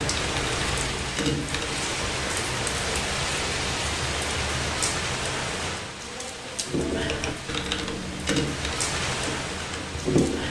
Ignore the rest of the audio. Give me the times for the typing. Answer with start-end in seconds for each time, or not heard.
0.0-1.9, 6.7-10.4.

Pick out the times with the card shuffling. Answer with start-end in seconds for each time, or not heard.
not heard.